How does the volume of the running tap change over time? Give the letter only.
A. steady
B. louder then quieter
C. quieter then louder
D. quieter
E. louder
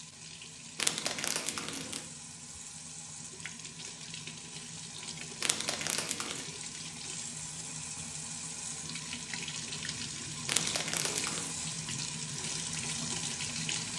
E.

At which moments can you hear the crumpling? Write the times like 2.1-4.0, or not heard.
0.8-2.0, 5.4-6.5, 10.4-11.6.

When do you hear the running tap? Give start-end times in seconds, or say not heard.
0.0-13.9.